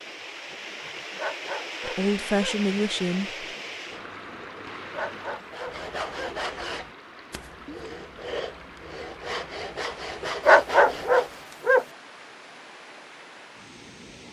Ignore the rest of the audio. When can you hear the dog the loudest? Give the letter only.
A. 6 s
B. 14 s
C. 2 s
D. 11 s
D.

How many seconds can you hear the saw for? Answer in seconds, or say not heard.
6 s.